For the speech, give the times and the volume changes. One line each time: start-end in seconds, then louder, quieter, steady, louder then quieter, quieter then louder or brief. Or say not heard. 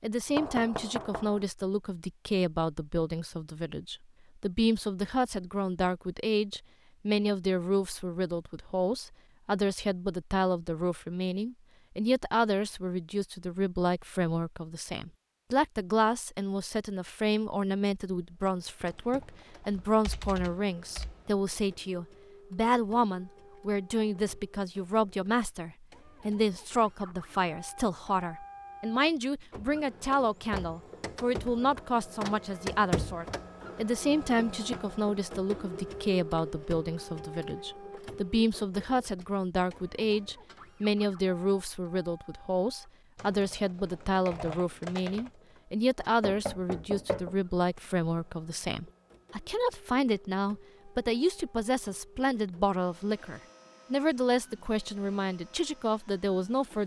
0.0-56.8 steady.